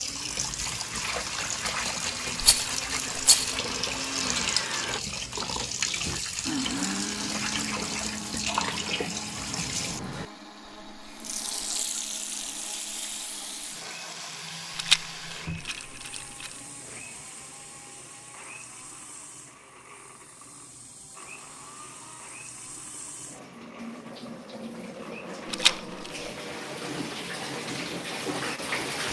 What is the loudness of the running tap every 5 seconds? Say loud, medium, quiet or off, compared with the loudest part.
loud, loud, medium, quiet, quiet, loud.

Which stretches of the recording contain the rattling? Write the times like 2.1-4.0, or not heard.
2.4-3.6, 14.8-16.5, 25.5-26.1.